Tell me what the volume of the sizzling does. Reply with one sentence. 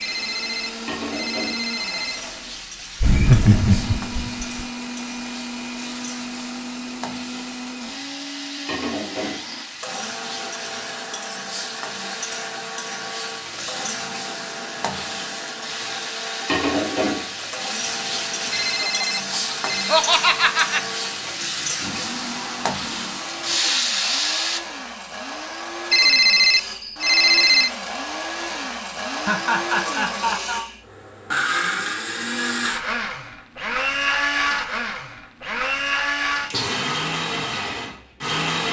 The loudness of the sizzling goes up.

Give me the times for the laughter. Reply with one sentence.
The laughter can be heard from 3.0 to 4.7 s, from 18.8 to 20.8 s and from 29.1 to 30.6 s.